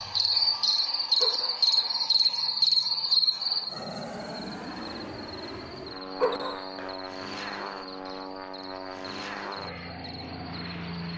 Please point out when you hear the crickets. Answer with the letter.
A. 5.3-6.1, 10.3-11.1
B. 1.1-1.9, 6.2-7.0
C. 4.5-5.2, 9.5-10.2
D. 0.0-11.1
D.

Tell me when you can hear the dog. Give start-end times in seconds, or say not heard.
1.1-1.9, 6.2-7.0.